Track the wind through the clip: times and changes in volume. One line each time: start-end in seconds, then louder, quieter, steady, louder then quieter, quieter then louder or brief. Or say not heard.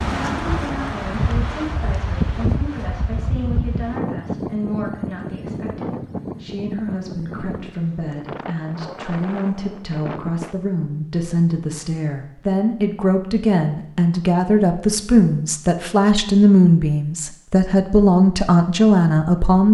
0.0-10.6 quieter.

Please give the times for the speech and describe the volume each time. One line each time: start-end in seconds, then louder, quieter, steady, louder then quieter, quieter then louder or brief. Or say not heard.
0.1-19.6 louder.